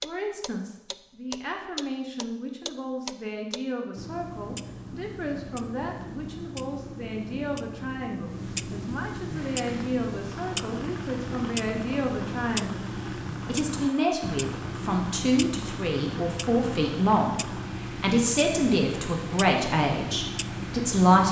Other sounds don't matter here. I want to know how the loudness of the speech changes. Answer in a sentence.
The loudness of the speech goes up.